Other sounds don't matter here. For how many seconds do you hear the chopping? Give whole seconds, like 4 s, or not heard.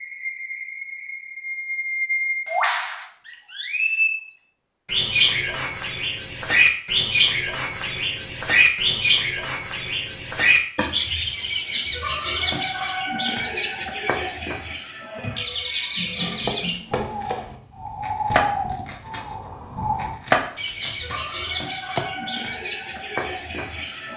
6 s.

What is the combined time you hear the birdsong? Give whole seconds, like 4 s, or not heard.
24 s.